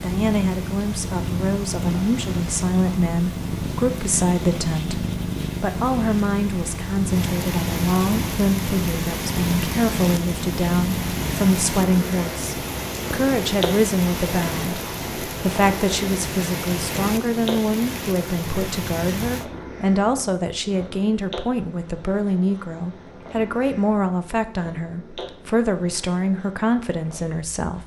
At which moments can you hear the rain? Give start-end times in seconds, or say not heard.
0.0-19.4.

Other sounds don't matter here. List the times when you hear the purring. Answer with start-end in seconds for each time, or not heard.
0.0-27.8.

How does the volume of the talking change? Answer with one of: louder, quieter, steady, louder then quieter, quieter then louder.
steady.